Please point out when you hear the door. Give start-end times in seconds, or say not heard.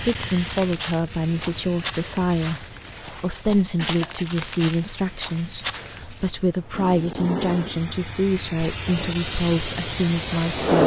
not heard.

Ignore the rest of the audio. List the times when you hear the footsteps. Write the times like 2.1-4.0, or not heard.
0.0-6.3.